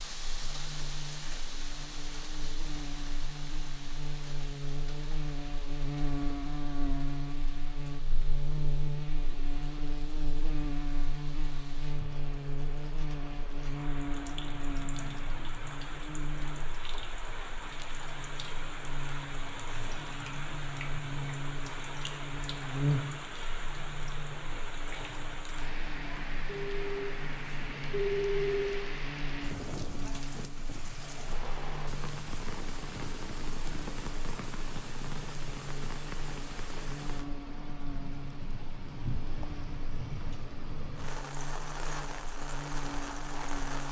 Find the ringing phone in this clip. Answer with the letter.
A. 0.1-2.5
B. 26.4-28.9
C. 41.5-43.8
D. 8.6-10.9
B.